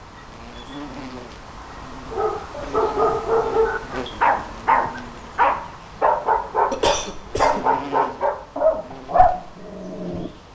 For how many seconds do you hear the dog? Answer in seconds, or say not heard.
8 s.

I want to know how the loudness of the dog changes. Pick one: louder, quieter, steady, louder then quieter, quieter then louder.
steady.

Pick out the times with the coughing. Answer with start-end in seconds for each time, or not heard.
6.7-7.7.